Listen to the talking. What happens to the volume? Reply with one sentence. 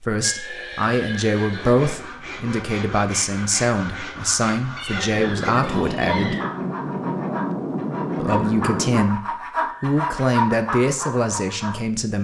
The loudness of the talking stays about the same.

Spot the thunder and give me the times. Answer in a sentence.
You can hear the thunder from 5.2 to 9.1 s.